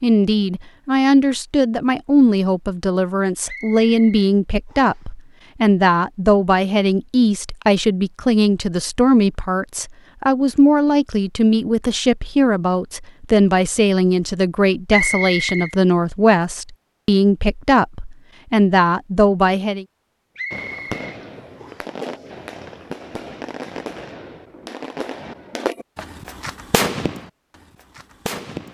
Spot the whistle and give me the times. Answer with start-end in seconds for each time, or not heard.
3.5-5.0, 14.9-15.8, 20.4-21.9.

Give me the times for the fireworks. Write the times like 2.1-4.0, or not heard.
20.5-28.6.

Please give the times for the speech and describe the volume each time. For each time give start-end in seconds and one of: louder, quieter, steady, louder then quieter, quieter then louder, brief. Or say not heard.
0.0-19.9 steady.